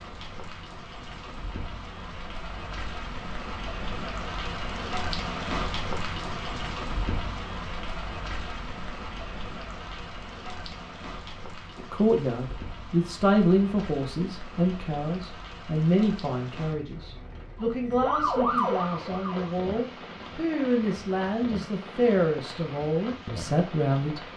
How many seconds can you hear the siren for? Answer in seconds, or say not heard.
2 s.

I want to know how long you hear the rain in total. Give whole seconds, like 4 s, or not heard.
24 s.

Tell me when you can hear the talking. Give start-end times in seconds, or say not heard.
11.8-24.2.